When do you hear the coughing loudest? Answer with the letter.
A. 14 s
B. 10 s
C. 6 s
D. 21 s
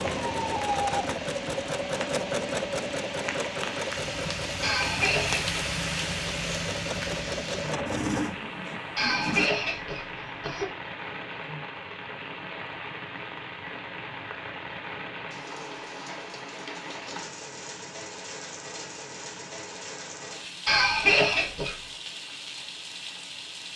D.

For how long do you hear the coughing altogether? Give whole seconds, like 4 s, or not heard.
4 s.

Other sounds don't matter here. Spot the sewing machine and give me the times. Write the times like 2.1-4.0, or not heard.
0.0-9.5.